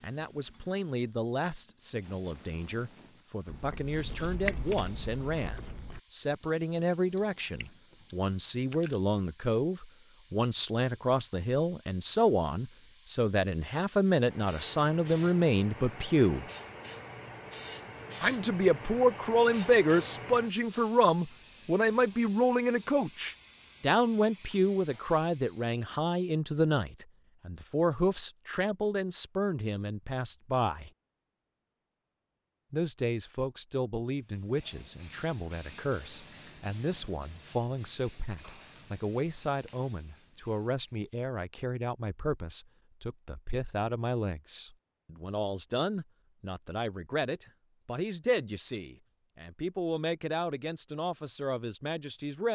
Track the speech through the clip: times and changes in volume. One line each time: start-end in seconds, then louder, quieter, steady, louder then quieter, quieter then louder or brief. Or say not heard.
0.0-16.4 louder
18.2-30.9 quieter
32.7-52.5 steady.